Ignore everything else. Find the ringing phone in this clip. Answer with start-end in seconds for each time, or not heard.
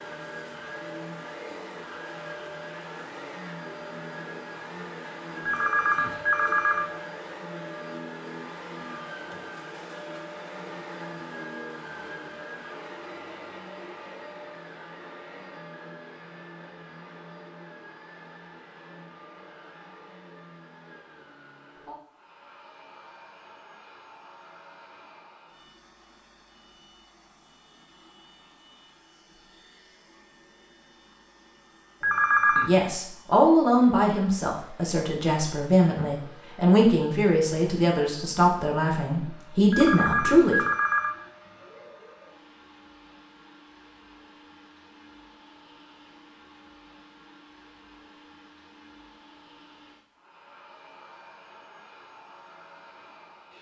5.5-7.0, 32.0-32.7, 39.7-41.3.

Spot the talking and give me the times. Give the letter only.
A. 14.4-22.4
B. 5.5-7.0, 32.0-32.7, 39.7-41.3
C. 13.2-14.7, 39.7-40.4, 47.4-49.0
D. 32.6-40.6
D.